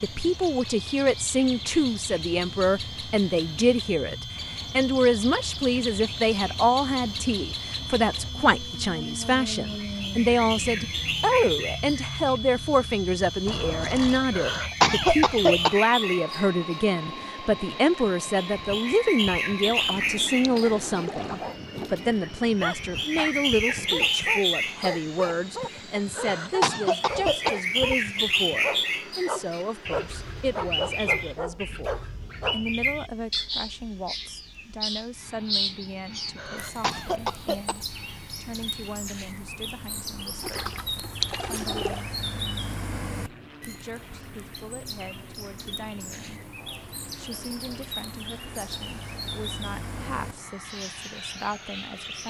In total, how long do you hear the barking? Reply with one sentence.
The barking can be heard for 11 seconds in total.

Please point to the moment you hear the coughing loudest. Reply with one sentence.
The volume of the coughing peaks at 15 seconds.